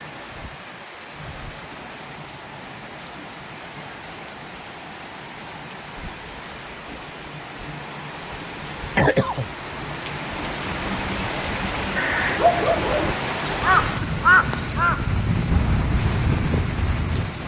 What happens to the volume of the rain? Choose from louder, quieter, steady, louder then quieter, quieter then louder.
louder.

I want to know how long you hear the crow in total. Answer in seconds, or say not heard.
5 s.